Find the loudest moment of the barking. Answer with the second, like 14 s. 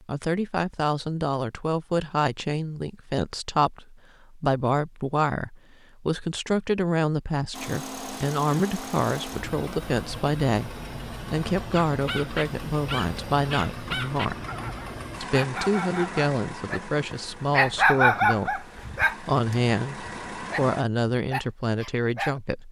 18 s.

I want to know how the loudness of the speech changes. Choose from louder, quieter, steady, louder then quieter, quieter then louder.
steady.